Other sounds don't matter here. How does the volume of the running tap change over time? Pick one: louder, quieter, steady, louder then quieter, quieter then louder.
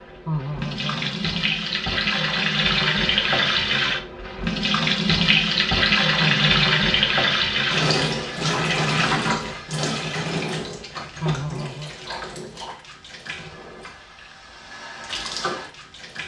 quieter.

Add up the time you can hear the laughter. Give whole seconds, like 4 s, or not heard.
3 s.